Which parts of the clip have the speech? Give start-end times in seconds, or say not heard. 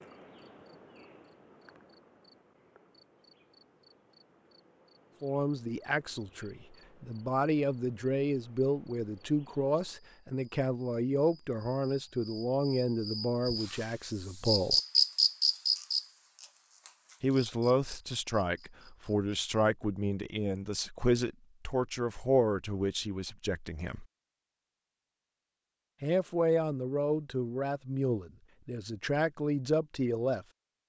5.2-14.8, 17.2-24.1, 26.0-30.4.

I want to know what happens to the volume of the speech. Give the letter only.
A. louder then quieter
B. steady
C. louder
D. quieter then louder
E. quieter
B.